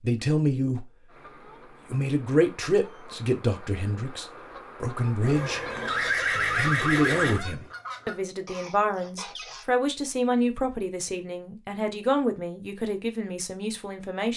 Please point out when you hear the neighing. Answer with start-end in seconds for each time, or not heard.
5.2-7.4.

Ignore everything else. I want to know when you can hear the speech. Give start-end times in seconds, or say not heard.
0.0-0.9, 1.9-5.6, 6.4-14.3.